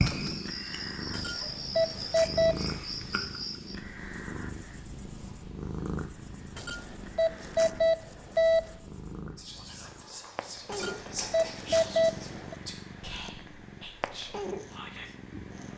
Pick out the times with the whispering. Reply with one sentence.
You can hear the whispering from 9.3 to 15.2 s.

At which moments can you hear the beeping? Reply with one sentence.
The beeping can be heard from 1.1 to 2.5 s, from 6.5 to 8.7 s and from 10.7 to 12.6 s.